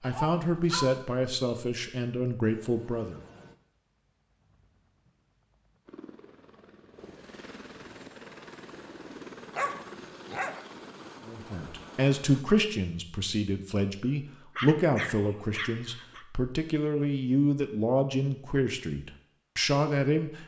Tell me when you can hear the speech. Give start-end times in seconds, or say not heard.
0.0-3.2, 11.2-20.4.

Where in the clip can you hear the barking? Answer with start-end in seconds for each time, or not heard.
0.0-1.0, 9.6-10.7, 14.6-16.2.